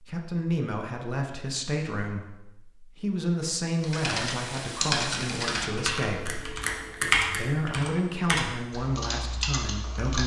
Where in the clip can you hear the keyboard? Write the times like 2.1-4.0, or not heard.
3.8-10.2.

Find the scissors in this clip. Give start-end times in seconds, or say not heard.
6.0-7.5.